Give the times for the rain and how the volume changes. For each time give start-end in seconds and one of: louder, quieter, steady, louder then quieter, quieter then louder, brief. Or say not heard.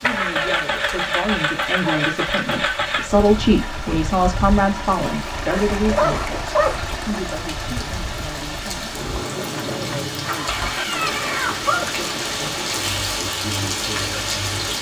0.0-14.7 louder.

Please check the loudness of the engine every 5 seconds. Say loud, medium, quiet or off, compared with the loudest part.
loud, medium, medium.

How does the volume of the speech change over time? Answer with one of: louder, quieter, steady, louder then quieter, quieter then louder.
louder then quieter.